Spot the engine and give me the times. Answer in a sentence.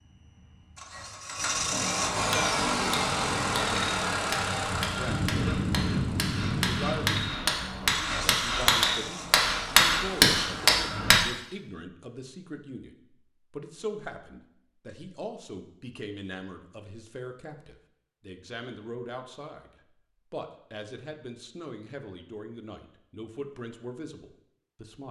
The engine can be heard from 0.0 to 10.7 s.